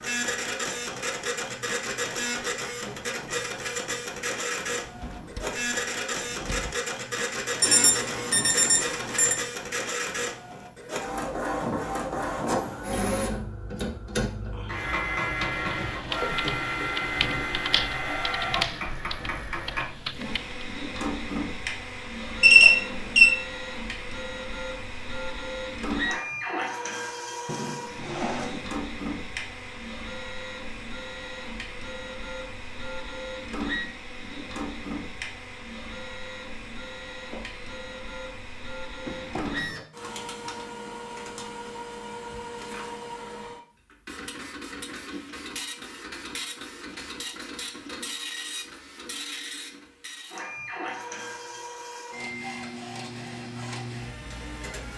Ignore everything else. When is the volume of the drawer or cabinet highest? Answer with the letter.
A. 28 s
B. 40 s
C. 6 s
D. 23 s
A.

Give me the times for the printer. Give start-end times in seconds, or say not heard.
0.0-54.9.